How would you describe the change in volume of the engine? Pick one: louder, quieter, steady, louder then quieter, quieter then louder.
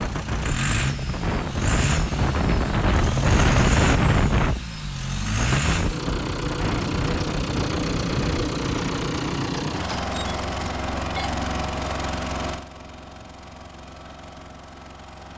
quieter.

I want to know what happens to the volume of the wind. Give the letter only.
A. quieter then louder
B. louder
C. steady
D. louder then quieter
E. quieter
D.